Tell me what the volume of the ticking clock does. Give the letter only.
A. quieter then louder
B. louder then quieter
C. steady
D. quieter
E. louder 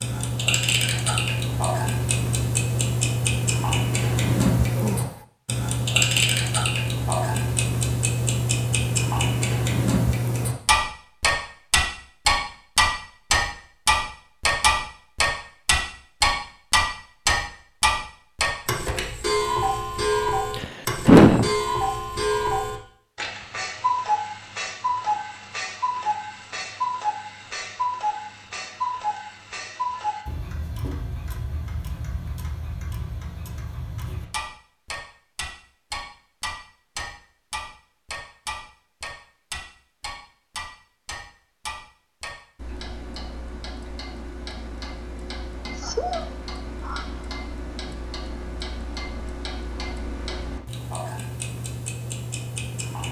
D.